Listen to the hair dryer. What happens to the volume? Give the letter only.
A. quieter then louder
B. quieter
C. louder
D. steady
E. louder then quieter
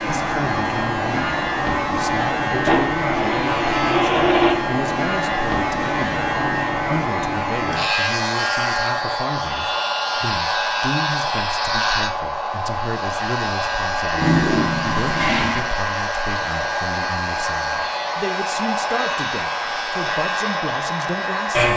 D.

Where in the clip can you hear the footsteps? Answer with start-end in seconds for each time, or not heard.
not heard.